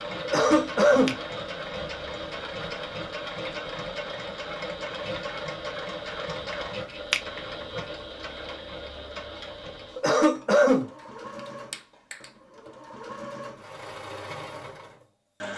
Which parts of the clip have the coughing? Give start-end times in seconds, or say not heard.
0.2-1.2, 9.9-10.9.